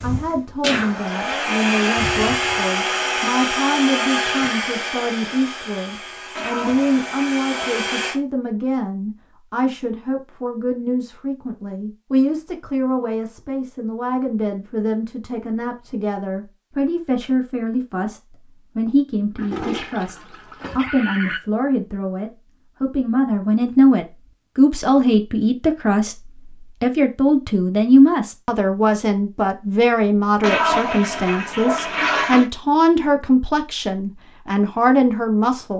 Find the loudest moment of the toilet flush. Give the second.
31 s.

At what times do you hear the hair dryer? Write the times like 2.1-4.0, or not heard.
0.0-8.2.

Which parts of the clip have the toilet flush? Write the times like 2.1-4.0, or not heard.
6.3-7.9, 19.4-21.4, 30.4-32.5.